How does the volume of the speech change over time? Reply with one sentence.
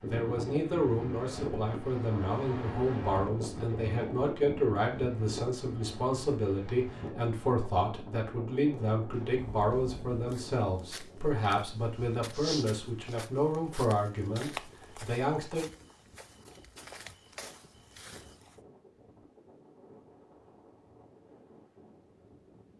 The volume of the speech stays about the same.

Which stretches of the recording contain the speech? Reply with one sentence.
The speech can be heard from 0.0 to 15.7 s.